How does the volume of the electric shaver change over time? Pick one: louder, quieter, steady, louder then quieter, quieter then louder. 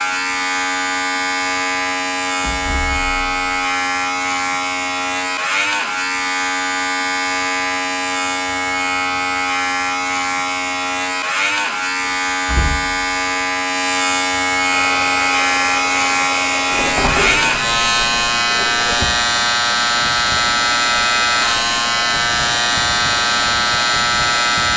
steady.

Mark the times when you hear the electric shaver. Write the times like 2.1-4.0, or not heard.
0.0-24.7.